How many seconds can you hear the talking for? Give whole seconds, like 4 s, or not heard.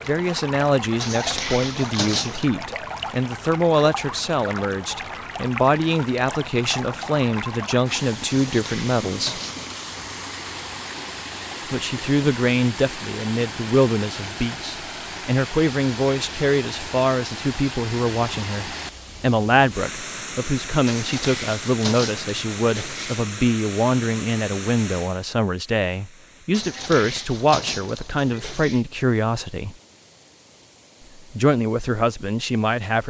29 s.